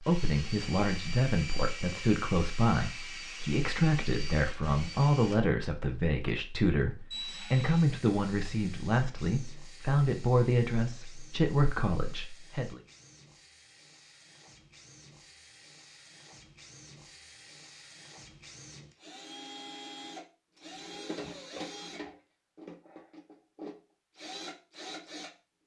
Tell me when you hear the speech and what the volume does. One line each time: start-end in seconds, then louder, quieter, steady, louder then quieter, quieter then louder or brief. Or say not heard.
0.0-12.8 steady.